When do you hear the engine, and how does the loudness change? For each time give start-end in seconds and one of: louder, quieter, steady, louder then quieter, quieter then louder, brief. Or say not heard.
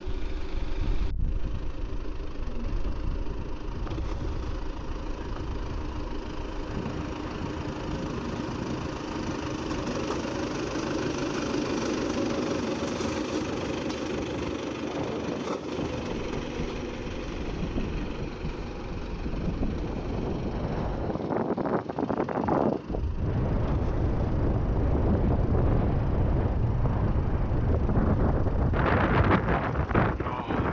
0.0-30.6 louder then quieter.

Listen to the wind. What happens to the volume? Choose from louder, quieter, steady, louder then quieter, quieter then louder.
louder.